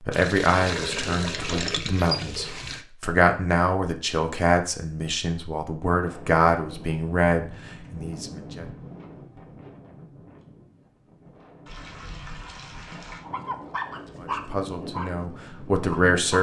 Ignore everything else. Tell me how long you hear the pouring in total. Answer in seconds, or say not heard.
4 s.